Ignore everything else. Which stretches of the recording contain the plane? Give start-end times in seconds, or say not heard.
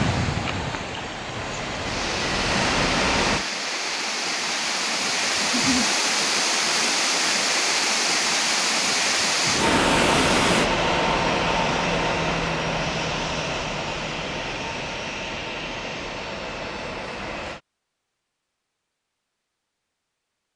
0.0-3.5, 9.6-17.6.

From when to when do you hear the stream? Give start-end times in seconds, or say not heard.
0.0-10.7.